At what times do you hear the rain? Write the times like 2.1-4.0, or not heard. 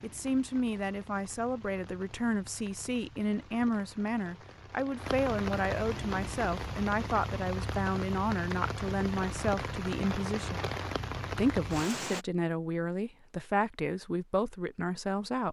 0.0-12.2.